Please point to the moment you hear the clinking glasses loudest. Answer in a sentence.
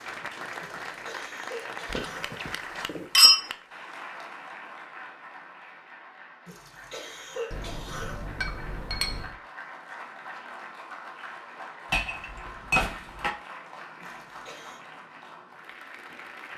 The volume of the clinking glasses peaks at 3 seconds.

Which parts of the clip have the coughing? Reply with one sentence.
The coughing can be heard from 0.6 to 2.4 s, from 6.5 to 8.2 s and from 14.0 to 14.8 s.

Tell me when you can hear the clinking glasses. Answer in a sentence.
The clinking glasses can be heard from 1.9 to 3.4 s, from 7.5 to 9.3 s and from 11.9 to 13.3 s.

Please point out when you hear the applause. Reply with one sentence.
The applause can be heard from 0.0 to 16.5 s.